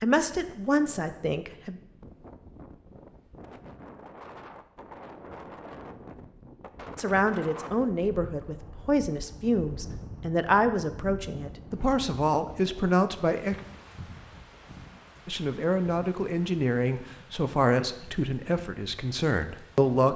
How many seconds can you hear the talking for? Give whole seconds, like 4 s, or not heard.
13 s.